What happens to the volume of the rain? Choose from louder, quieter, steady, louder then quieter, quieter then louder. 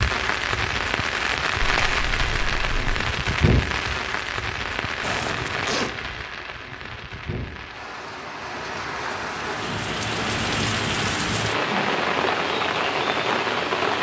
quieter then louder.